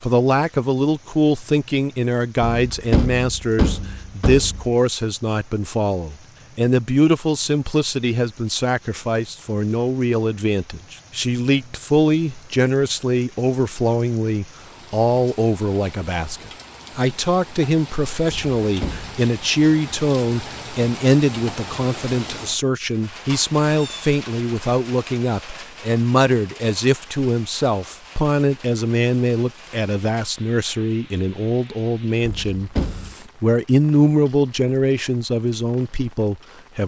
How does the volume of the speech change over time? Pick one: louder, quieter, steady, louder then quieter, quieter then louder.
steady.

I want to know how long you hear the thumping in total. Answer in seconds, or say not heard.
4 s.